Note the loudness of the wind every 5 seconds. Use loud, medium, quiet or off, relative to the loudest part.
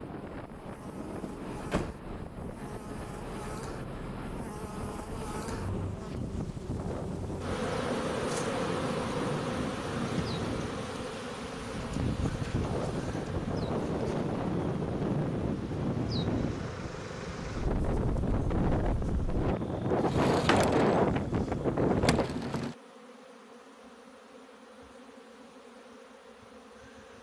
quiet, medium, medium, medium, loud, off.